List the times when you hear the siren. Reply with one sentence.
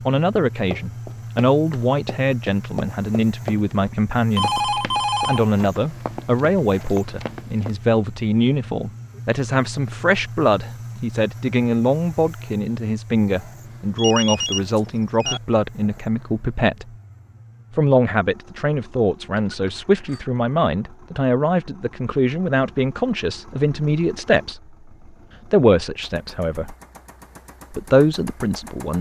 You can't hear the siren here.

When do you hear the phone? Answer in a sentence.
The phone can be heard from 4.3 to 5.5 s, from 13.9 to 15.4 s and from 19.4 to 20.2 s.